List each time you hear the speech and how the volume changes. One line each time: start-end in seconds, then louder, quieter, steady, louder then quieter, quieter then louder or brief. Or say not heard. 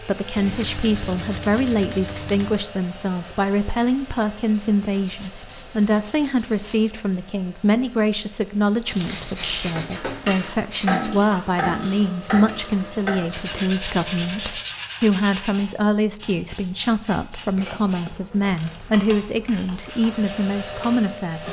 0.0-21.4 steady.